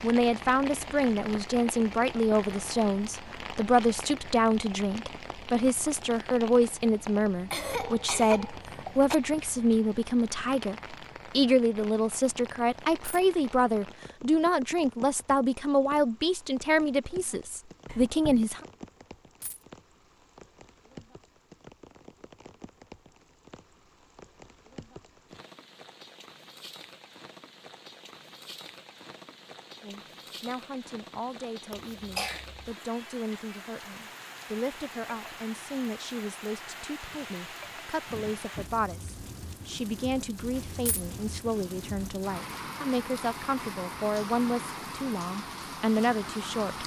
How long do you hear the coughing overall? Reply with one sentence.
The coughing can be heard for 3 seconds in total.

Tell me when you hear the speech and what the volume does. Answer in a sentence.
The speech can be heard from 0.0 to 18.6 s, at a steady volume; and from 29.8 to 46.8 s, getting louder.